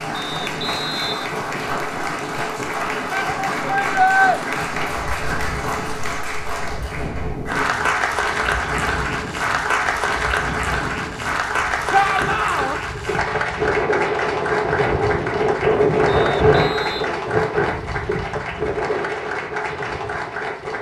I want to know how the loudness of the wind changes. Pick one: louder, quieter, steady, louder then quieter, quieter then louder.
louder.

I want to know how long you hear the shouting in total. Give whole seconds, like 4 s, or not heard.
2 s.